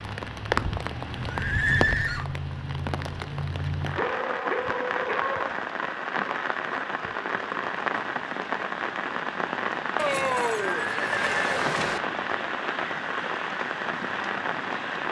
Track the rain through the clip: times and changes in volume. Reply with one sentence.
You can hear the rain from 0.0 to 15.0 s, at a steady volume.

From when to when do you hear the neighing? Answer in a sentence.
The neighing can be heard from 0.5 to 2.2 s and from 9.9 to 12.0 s.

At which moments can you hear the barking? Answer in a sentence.
You can hear the barking from 4.0 to 5.5 s.